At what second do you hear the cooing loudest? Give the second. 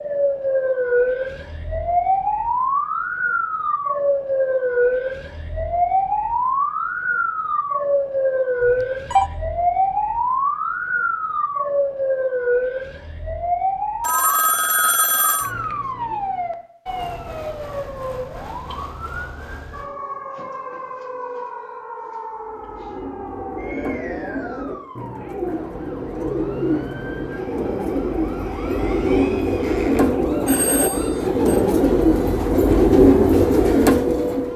33 s.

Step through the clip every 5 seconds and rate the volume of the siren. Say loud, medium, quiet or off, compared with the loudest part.
loud, loud, loud, medium, quiet, quiet, medium.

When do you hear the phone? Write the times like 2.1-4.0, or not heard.
8.6-9.3, 14.0-15.5, 30.4-31.6.